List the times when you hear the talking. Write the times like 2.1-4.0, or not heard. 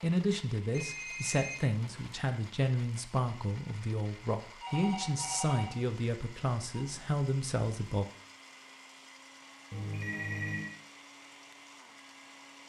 0.0-8.1.